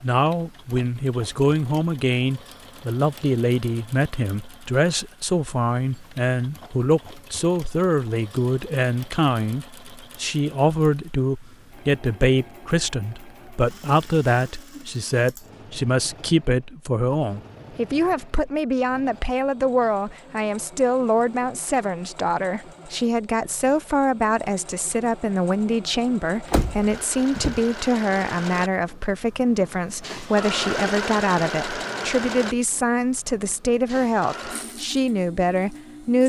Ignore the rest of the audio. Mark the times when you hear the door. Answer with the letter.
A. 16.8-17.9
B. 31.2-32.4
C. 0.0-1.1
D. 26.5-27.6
D.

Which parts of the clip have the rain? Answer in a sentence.
You can't hear the rain here.